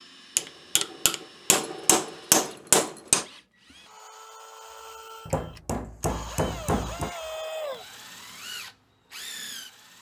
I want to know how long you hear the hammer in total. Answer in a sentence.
The hammer can be heard for 5 seconds in total.